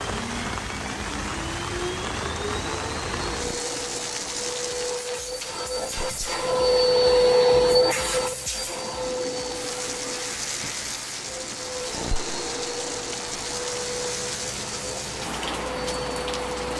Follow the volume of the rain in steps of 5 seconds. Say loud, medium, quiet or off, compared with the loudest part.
loud, medium, loud, loud.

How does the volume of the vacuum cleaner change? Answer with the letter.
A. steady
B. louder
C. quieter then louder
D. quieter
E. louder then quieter
E.